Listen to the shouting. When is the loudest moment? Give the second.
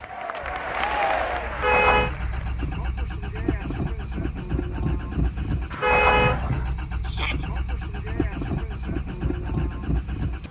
1 s.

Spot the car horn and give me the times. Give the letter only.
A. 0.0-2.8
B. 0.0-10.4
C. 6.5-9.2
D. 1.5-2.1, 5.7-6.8
D.